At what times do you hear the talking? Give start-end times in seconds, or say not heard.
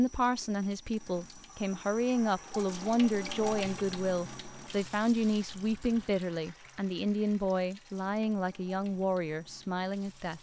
0.0-10.3.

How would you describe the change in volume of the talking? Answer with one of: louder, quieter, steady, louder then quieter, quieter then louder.
steady.